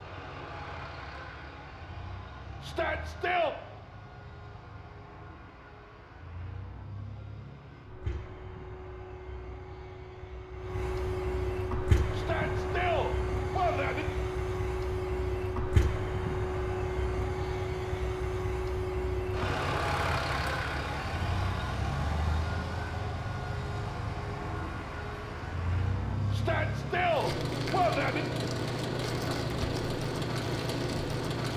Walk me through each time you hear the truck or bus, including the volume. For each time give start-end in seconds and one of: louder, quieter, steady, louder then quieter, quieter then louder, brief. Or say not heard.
0.0-31.5 louder.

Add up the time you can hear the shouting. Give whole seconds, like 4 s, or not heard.
5 s.